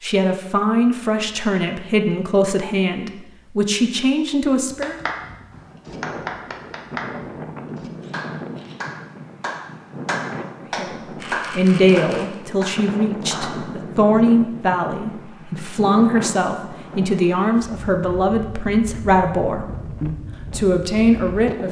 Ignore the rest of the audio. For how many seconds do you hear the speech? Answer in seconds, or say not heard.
16 s.